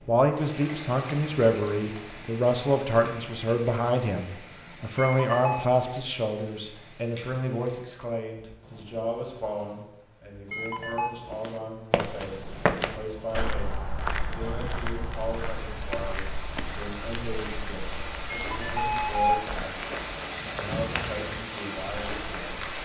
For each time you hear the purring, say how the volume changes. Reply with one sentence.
You can't hear the purring here.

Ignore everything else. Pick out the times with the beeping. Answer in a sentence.
The beeping can be heard from 5.0 to 5.7 s, from 10.5 to 11.2 s and from 18.4 to 19.6 s.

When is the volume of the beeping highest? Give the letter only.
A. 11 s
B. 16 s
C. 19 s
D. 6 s
C.